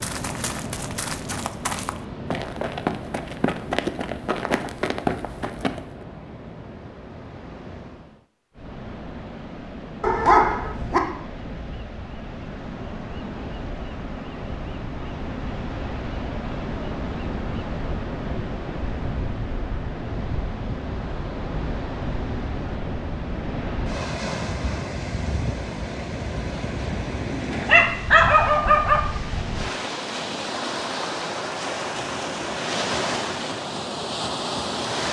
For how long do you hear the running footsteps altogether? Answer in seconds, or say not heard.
6 s.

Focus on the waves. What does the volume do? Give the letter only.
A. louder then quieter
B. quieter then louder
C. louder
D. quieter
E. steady
C.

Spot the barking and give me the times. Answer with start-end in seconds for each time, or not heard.
10.0-11.0, 27.6-29.1.